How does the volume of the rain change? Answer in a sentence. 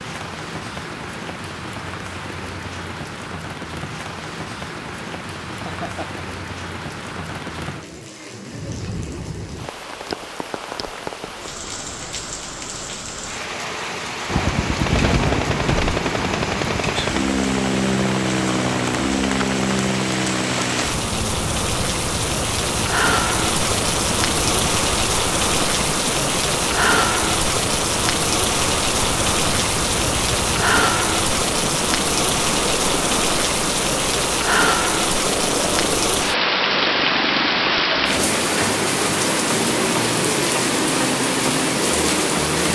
The volume of the rain goes up.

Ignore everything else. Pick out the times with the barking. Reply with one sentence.
The barking can't be heard in this clip.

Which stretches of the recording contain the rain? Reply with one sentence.
The rain can be heard from 0.0 to 42.7 s.